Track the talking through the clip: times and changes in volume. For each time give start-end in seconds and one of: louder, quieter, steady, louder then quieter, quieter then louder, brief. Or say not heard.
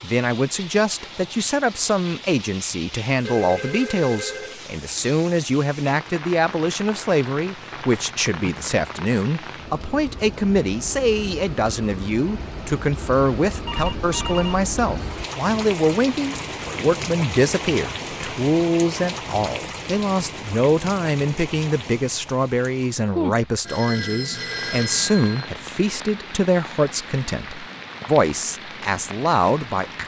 0.0-30.0 steady.